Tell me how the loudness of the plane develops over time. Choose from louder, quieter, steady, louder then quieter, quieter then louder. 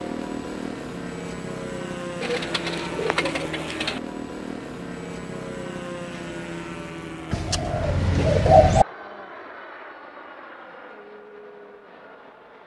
quieter.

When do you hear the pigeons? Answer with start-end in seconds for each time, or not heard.
2.2-4.0, 7.3-8.8.